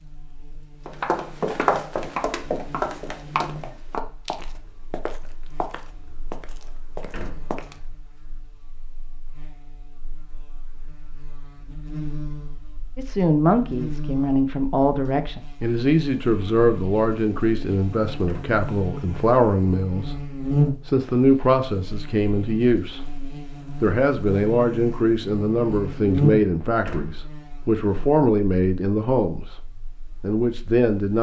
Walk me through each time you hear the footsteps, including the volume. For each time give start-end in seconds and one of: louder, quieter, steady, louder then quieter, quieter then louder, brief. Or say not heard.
0.8-8.0 quieter.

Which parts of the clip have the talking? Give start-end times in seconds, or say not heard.
12.9-23.0, 23.8-31.1.